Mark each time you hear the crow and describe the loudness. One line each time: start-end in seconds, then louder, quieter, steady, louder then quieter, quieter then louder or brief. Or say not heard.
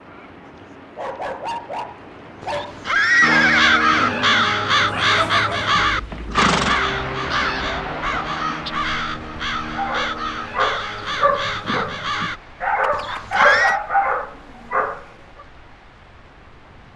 3.2-12.4 quieter.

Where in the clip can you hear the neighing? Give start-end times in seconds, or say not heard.
2.4-4.1, 5.8-6.8, 12.9-13.8.